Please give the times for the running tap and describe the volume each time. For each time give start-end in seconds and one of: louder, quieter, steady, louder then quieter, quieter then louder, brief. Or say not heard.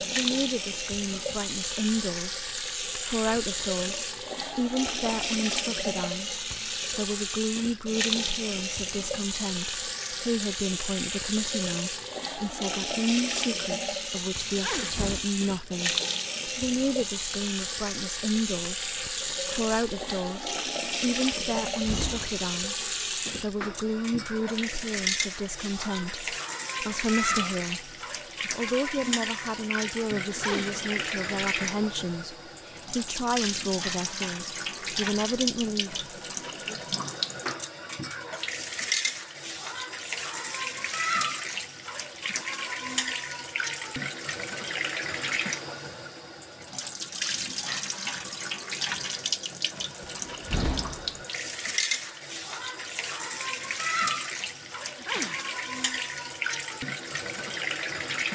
0.0-58.2 steady.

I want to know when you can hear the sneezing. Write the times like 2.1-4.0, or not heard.
14.4-14.9, 30.2-30.8, 54.9-55.4.